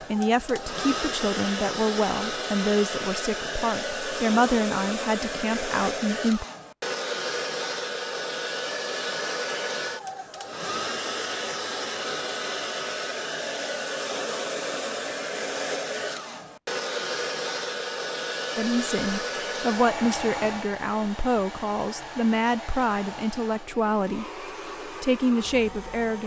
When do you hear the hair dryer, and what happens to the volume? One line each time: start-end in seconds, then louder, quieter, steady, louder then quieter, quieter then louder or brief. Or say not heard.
0.0-26.2 quieter.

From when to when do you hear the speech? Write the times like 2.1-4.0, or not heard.
0.1-6.5, 18.6-26.2.